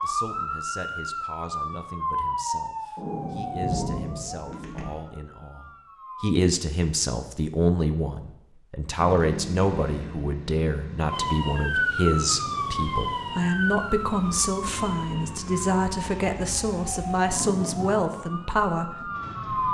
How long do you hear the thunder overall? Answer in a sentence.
The thunder can be heard for 2 seconds in total.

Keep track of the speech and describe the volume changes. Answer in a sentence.
The volume of the speech goes up.